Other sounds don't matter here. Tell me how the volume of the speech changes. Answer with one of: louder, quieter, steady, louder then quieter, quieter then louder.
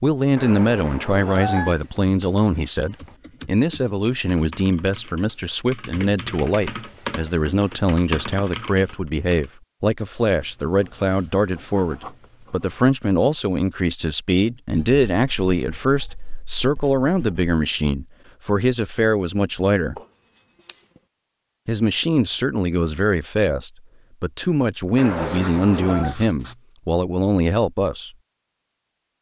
steady.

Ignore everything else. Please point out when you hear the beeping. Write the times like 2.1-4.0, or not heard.
0.3-1.8, 24.9-26.1.